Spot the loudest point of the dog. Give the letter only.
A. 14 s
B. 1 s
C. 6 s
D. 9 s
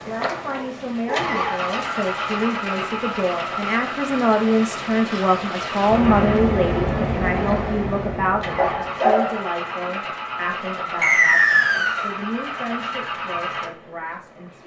D.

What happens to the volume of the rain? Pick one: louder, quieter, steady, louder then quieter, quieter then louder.
louder.